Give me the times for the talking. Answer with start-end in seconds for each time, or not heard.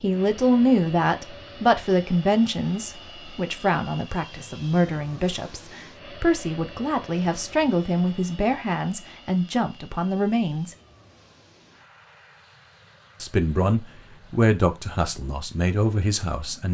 0.0-10.8, 13.2-16.6.